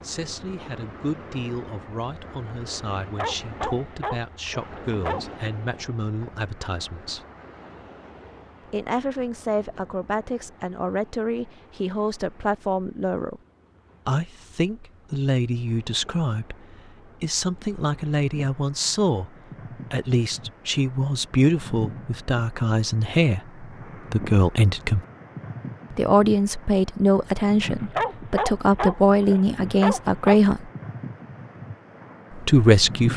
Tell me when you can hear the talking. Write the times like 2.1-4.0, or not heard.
0.0-7.2, 8.7-13.4, 14.1-19.3, 19.9-25.1, 25.9-30.7, 32.4-33.1.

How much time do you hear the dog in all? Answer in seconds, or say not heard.
5 s.